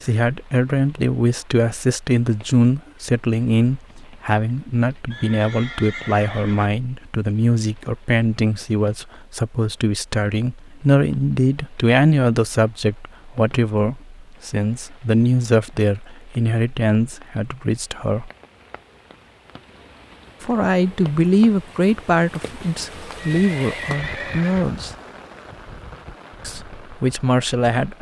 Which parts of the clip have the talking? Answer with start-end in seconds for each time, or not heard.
0.0-18.3, 20.4-24.9, 26.4-27.9.